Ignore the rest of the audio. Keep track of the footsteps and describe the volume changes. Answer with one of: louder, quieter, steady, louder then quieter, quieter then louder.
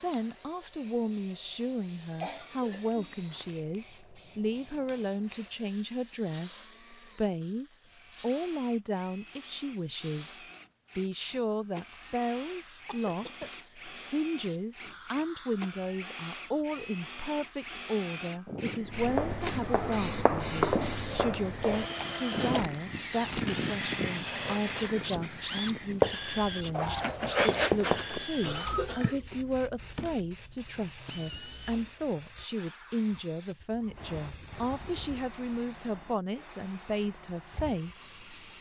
quieter then louder.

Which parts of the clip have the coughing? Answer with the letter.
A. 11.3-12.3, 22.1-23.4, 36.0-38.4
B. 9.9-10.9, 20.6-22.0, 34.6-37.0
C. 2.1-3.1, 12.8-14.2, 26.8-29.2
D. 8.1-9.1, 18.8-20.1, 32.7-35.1
C.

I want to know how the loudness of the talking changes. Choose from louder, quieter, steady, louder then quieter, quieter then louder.
steady.